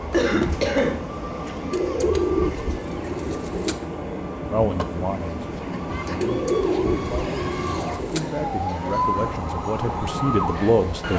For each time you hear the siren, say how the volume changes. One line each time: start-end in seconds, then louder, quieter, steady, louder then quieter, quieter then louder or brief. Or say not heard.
0.0-11.1 quieter then louder.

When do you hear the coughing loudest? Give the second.
1 s.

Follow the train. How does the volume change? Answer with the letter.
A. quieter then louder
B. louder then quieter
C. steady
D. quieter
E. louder
C.